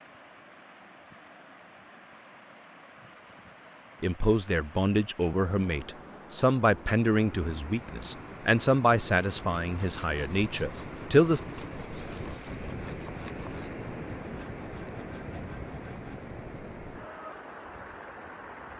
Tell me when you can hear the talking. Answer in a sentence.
The talking can be heard from 4.0 to 11.4 s.